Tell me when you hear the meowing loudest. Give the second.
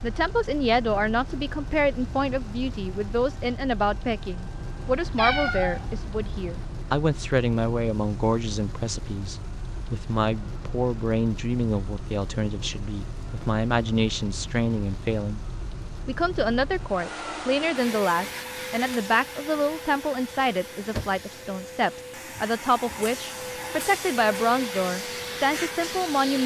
5 s.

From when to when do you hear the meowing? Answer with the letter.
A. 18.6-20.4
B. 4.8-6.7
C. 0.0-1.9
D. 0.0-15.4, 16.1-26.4
B.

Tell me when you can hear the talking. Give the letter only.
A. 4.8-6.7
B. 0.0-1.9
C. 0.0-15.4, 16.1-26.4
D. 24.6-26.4
C.